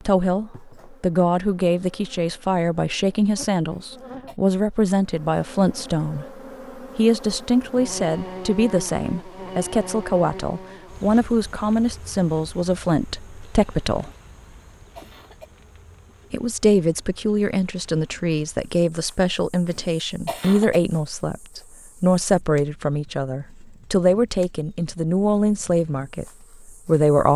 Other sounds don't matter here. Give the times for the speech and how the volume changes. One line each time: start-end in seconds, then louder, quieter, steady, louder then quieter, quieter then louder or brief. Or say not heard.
0.1-14.1 steady
16.3-27.3 steady.